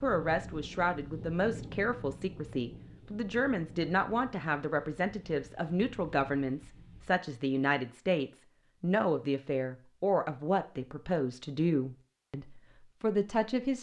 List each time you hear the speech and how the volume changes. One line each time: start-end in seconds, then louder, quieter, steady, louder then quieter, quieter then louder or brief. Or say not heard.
0.0-13.7 steady.